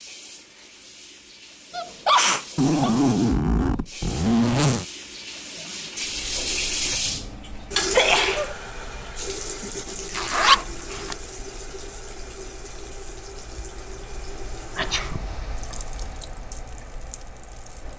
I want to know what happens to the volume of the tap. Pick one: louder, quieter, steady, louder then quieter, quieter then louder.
louder then quieter.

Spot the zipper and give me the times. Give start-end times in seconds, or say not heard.
2.5-4.8, 10.1-11.2.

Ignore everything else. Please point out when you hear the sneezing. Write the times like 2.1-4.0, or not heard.
1.7-2.9, 7.9-8.6, 14.8-15.2.